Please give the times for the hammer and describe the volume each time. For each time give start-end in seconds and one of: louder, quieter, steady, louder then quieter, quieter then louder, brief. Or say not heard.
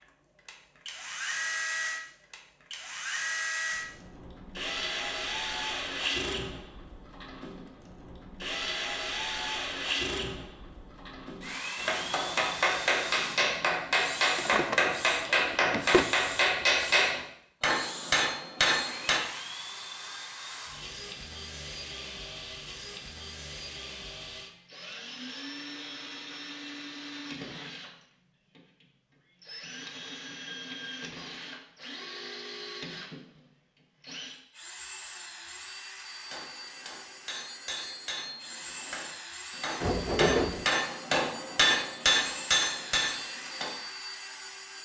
11.8-19.2 steady
36.3-43.7 louder.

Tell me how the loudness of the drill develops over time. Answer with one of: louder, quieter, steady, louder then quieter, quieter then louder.
quieter.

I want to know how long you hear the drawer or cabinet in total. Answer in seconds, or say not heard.
3 s.